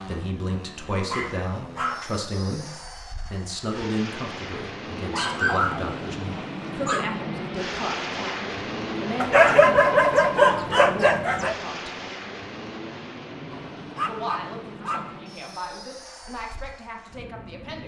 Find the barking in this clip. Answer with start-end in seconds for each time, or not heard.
1.1-2.1, 5.1-7.1, 9.2-11.6, 13.5-15.2.